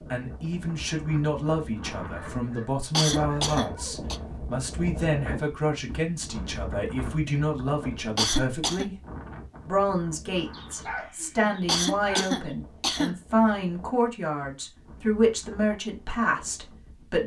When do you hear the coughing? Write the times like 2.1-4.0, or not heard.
2.9-4.2, 8.2-8.8, 11.7-13.2.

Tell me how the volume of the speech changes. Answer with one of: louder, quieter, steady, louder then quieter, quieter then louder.
steady.